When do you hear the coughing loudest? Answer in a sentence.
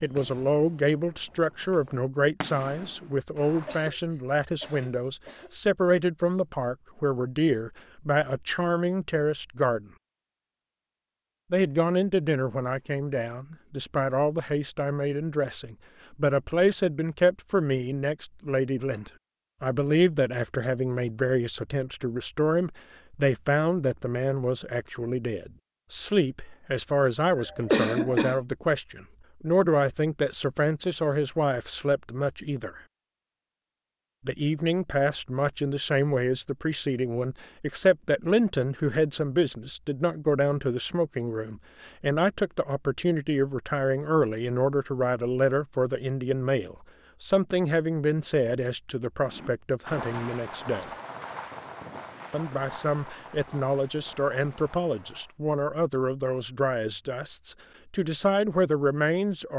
The loudest moment of the coughing is at 28 seconds.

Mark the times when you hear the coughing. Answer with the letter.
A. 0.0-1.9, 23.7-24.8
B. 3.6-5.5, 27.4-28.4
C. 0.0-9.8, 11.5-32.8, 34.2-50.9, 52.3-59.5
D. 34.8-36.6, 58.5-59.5
B.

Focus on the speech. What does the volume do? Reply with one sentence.
The volume of the speech stays about the same.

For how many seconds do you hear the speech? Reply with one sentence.
You can hear the speech for 55 seconds altogether.